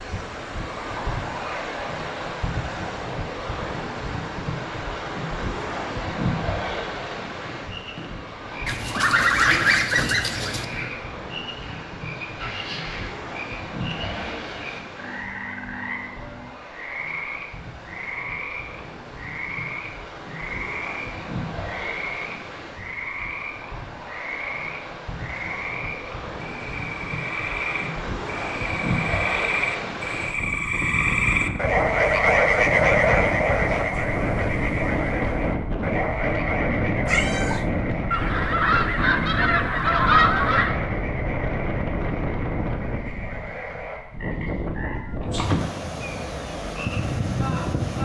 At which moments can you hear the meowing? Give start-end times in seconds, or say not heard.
37.0-37.6.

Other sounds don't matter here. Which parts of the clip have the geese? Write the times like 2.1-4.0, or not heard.
8.7-10.7, 38.1-40.8.